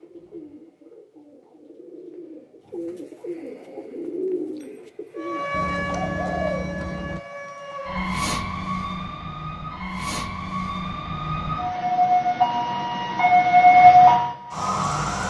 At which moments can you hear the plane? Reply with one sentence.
You can't hear the plane here.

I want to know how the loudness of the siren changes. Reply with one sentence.
The volume of the siren goes up.